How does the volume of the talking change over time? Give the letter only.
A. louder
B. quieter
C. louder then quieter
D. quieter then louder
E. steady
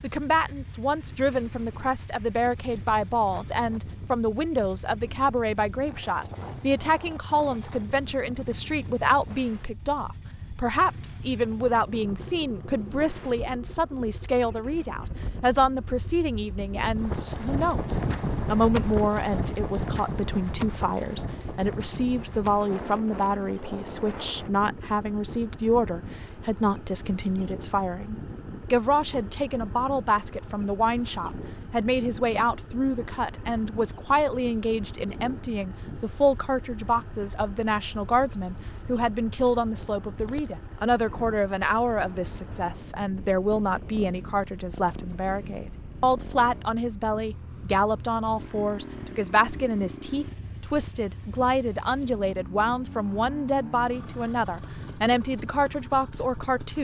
E.